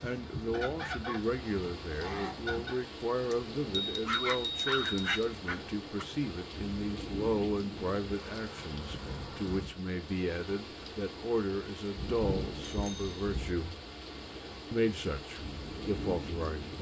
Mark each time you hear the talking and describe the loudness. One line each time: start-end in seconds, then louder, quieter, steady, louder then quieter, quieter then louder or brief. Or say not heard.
0.0-13.8 steady
14.7-16.7 brief.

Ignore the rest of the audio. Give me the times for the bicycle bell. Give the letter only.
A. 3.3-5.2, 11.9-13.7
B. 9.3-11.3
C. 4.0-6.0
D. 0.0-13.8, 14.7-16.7
A.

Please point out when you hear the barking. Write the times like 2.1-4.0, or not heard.
4.0-6.0.